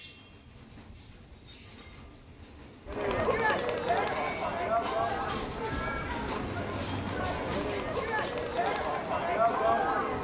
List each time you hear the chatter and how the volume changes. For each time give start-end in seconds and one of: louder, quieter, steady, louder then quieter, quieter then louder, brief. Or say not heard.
2.9-10.1 quieter then louder.